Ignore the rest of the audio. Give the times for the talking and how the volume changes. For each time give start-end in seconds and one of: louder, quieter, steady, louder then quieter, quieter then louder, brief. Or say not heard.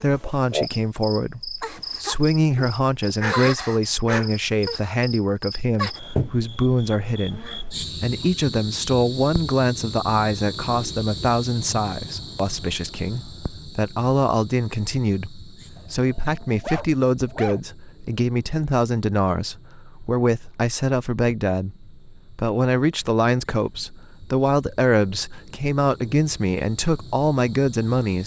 0.0-28.2 steady.